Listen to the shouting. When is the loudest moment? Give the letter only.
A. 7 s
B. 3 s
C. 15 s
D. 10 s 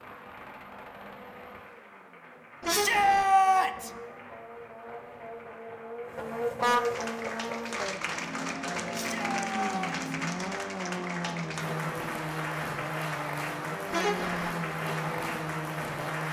B.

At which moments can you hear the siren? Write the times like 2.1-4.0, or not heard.
not heard.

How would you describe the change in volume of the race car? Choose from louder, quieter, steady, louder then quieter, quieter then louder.
louder.